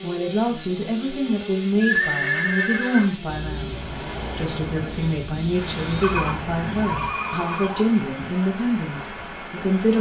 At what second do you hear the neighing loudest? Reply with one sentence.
The volume of the neighing peaks at 2 seconds.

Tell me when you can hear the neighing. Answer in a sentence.
You can hear the neighing from 1.2 to 3.1 s and from 6.0 to 7.9 s.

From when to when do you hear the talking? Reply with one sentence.
You can hear the talking from 0.0 to 3.8 s and from 4.3 to 9.9 s.